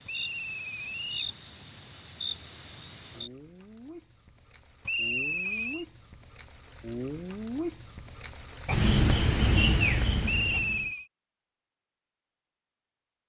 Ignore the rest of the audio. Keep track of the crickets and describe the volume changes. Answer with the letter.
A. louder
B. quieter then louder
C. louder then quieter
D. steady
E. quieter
A.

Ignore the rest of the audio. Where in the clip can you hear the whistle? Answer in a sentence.
The whistle can be heard from 0.1 to 1.4 s, from 4.8 to 5.8 s and from 10.2 to 11.1 s.